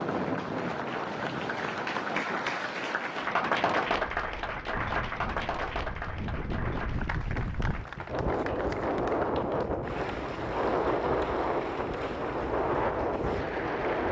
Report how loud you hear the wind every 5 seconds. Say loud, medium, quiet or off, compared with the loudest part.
medium, loud, loud.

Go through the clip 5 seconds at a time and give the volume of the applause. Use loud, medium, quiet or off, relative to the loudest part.
loud, medium, medium.